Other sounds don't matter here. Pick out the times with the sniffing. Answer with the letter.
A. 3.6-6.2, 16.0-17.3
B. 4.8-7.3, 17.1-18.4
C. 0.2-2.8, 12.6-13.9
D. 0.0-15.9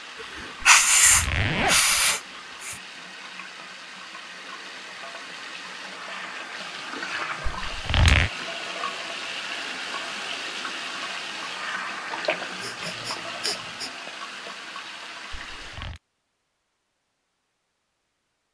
C.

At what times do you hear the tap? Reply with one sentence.
You can hear the tap from 0.0 to 15.9 s.